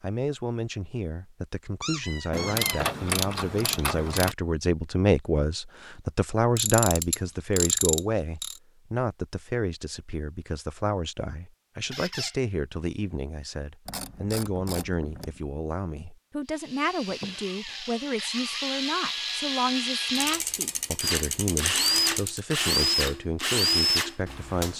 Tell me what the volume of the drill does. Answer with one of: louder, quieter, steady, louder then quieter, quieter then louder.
louder.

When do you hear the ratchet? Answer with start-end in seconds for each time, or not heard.
2.3-4.3, 6.5-8.6, 13.8-15.4, 20.1-22.4.